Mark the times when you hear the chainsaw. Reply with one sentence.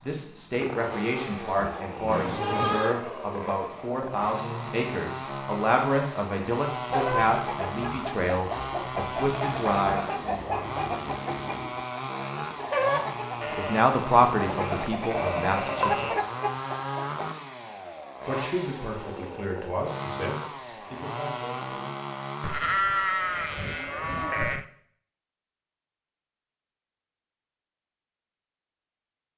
You can hear the chainsaw from 0.0 to 22.8 s.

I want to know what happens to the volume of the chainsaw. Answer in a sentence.
The volume of the chainsaw stays about the same.